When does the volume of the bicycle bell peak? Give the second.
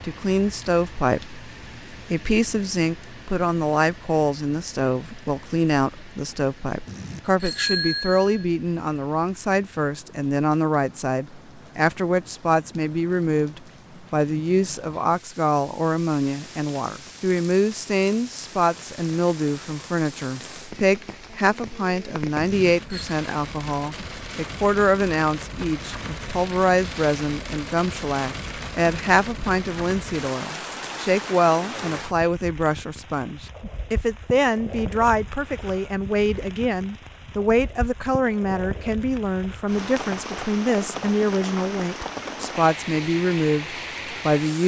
8 s.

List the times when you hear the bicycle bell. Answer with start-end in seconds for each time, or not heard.
6.8-8.4, 22.4-23.1.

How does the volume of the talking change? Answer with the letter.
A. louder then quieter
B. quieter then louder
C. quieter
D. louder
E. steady
E.